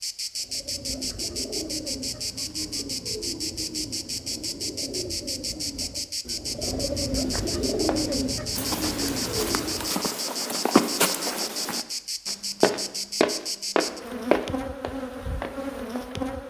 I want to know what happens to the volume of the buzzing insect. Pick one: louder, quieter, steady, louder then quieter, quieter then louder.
steady.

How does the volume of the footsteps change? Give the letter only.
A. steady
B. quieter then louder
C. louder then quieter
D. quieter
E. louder
E.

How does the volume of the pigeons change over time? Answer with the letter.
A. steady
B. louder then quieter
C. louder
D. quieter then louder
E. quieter
C.